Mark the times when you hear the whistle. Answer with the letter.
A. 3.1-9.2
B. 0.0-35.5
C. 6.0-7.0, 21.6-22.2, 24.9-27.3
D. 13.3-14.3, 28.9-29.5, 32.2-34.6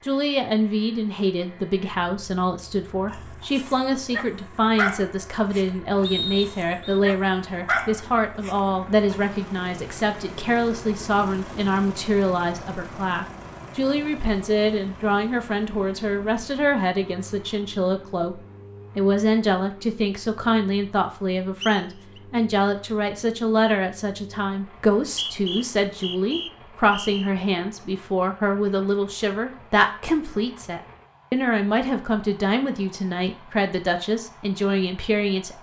C.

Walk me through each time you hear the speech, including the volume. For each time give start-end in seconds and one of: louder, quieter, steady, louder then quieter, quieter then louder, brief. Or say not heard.
0.0-35.5 steady.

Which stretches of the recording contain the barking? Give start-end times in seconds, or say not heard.
3.1-9.2.